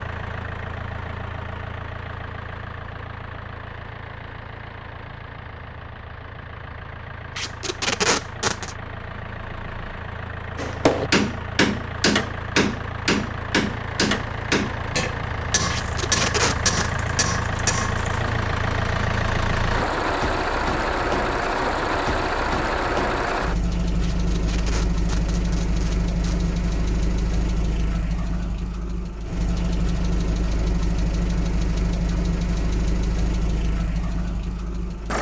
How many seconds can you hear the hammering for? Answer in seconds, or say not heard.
8 s.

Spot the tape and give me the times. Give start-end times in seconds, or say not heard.
7.3-8.8, 15.7-16.9, 24.0-26.6.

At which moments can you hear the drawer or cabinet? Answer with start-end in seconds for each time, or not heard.
not heard.